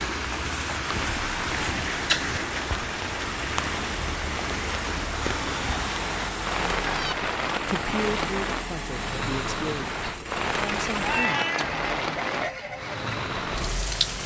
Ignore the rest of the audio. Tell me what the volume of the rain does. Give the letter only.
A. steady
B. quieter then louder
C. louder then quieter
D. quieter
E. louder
A.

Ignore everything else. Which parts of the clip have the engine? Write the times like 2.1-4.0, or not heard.
0.2-14.2.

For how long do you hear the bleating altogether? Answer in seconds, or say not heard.
not heard.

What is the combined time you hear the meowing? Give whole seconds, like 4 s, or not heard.
5 s.